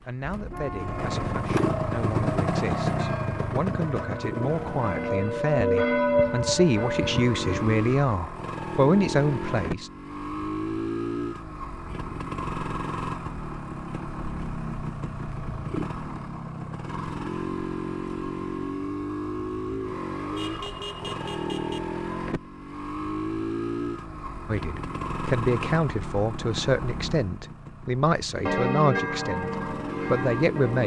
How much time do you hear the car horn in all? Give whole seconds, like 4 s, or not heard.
3 s.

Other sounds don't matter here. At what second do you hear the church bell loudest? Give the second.
6 s.